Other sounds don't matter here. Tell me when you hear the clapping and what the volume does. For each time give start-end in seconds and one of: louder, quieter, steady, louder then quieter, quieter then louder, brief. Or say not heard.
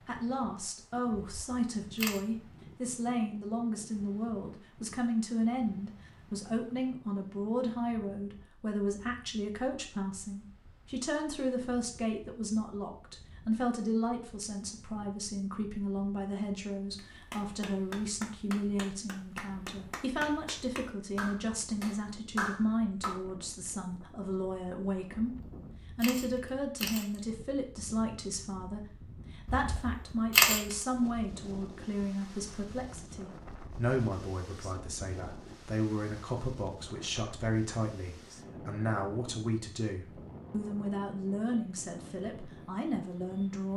16.9-23.2 louder.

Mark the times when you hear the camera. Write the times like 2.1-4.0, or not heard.
1.2-2.2, 25.2-27.1, 29.4-30.8.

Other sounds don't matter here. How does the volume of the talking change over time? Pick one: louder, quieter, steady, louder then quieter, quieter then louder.
steady.